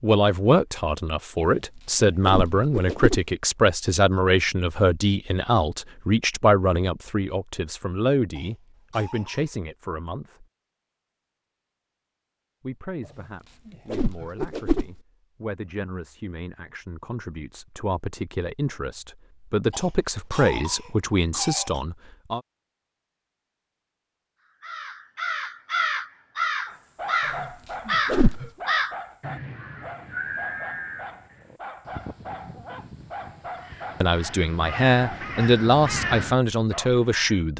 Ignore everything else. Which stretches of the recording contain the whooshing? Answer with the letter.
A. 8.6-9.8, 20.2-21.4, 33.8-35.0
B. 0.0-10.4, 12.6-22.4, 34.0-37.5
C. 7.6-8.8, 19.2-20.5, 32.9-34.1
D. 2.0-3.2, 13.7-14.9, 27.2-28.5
D.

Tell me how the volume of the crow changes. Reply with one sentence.
The volume of the crow goes down, then up.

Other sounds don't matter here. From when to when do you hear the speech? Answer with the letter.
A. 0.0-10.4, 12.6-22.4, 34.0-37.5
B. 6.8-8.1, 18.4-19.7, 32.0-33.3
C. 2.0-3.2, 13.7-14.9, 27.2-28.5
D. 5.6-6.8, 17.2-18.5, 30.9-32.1
A.